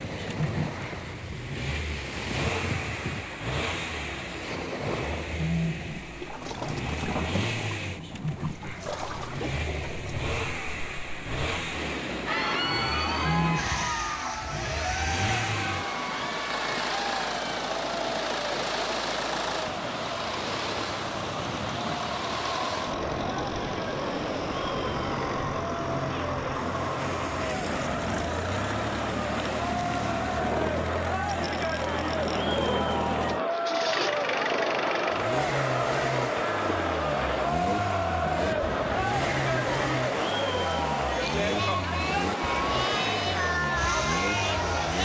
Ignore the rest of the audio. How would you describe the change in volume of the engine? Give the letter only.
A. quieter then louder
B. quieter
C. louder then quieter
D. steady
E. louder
D.